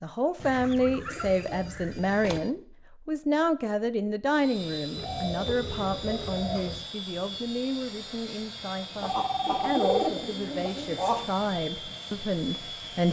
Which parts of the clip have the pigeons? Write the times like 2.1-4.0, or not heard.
0.3-2.4, 5.0-6.9, 9.0-11.2.